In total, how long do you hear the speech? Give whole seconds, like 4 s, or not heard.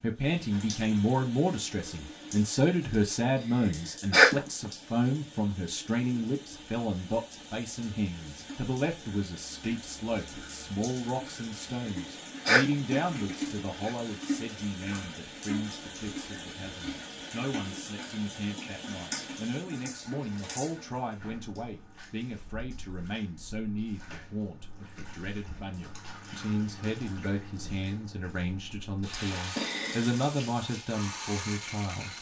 32 s.